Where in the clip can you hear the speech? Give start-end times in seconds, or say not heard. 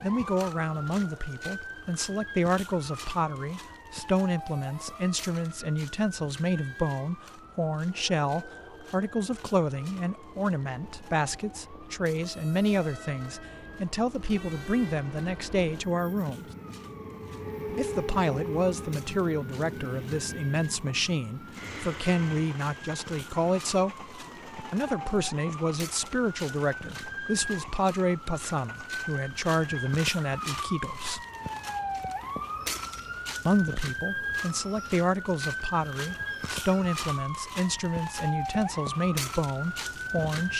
0.0-16.5, 17.8-31.2, 33.5-40.5.